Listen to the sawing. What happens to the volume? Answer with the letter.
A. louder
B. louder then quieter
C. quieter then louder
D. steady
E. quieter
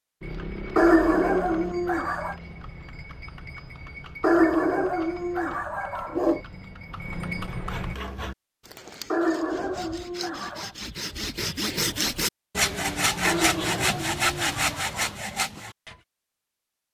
A.